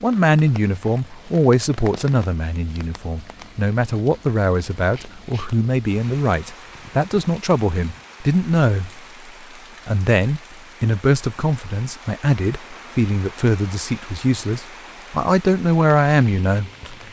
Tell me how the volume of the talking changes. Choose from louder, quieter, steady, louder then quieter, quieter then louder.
steady.